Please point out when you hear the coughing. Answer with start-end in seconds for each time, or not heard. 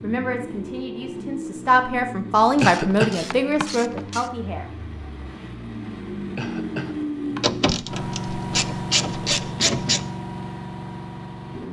2.6-3.6, 6.3-7.4.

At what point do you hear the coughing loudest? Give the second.
3 s.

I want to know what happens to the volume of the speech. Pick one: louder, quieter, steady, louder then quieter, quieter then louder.
louder then quieter.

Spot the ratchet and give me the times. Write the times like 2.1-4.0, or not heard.
2.5-4.3, 7.4-10.1.